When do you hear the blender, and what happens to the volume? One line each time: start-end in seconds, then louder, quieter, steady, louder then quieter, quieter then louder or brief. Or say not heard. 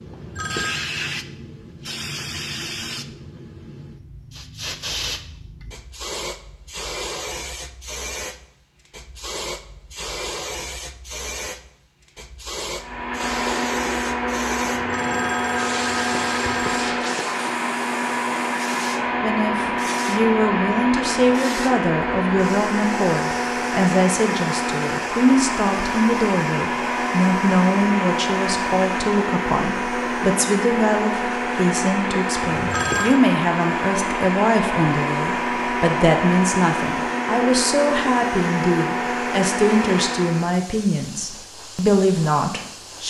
12.8-40.5 steady.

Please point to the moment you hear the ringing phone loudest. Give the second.
33 s.